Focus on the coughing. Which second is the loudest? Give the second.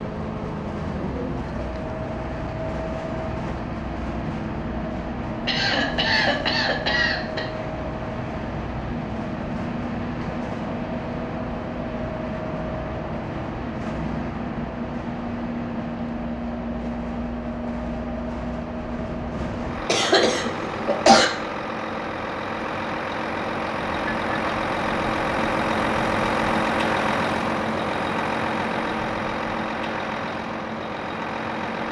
21 s.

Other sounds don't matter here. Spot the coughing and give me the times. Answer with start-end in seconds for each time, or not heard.
5.5-7.5, 19.9-21.2.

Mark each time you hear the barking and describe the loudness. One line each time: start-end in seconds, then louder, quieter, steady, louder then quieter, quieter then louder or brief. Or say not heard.
not heard.